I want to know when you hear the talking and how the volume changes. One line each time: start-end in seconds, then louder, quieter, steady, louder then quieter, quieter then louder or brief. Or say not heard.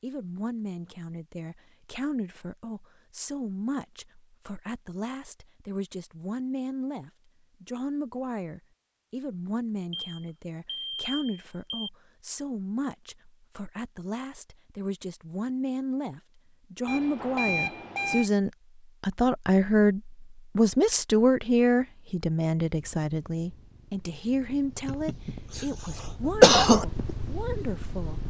0.0-28.2 louder then quieter.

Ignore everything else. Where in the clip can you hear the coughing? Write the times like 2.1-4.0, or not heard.
24.9-25.6, 26.4-26.9.